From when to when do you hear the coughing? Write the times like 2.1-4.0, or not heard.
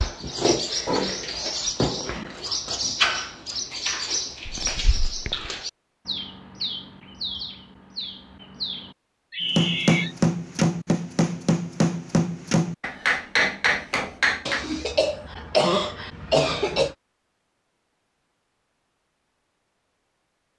4.5-5.5, 14.4-16.9.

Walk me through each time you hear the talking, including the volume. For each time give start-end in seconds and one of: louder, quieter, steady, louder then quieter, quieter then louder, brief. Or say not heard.
not heard.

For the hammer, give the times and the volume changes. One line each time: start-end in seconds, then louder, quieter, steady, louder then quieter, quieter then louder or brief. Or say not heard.
9.6-14.7 steady.